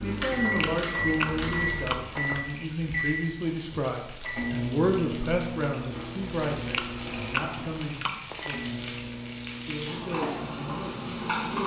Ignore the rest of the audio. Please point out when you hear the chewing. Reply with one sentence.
The chewing can be heard from 0.6 to 2.4 s and from 6.7 to 8.6 s.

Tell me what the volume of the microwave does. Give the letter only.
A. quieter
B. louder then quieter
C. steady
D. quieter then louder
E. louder
A.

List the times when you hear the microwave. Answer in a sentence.
You can hear the microwave from 0.0 to 11.6 s.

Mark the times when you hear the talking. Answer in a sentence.
You can hear the talking from 0.0 to 8.8 s and from 9.7 to 11.6 s.